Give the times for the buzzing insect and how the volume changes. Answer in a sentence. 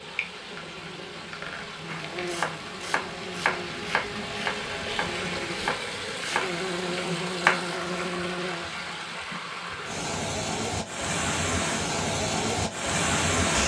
The buzzing insect can be heard from 0.0 to 9.1 s, getting louder.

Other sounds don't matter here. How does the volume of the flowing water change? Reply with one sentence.
The volume of the flowing water goes up.